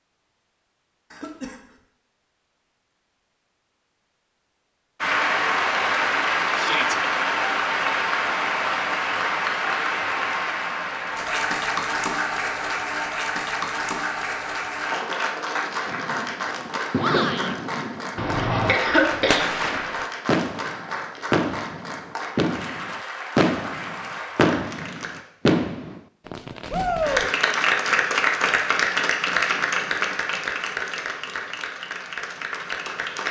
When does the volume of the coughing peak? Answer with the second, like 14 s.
19 s.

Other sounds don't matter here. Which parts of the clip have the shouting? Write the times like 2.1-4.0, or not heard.
6.5-7.0, 16.9-17.6, 26.7-27.3.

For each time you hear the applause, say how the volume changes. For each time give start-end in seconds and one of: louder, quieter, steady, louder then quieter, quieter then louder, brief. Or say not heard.
5.0-25.2 quieter
27.0-33.2 quieter.